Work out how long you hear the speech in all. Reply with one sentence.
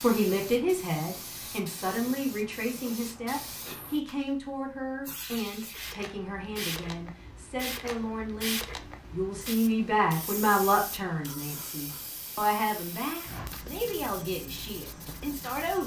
You can hear the speech for 16 seconds altogether.